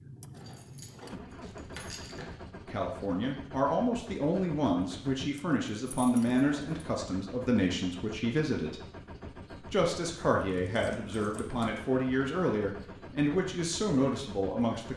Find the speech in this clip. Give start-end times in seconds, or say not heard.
2.6-8.8, 9.7-14.9.